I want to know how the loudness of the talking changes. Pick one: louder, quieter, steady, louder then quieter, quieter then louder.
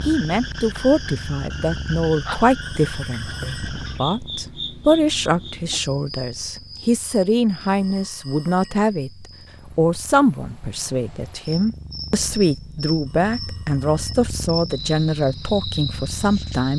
steady.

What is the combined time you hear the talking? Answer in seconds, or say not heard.
17 s.